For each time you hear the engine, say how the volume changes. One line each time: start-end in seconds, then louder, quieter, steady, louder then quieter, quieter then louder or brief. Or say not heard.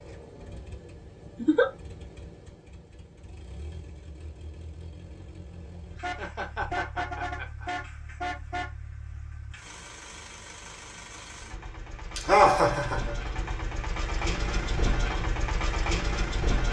0.0-16.6 louder.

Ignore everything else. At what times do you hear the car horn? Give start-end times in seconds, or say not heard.
6.0-8.7.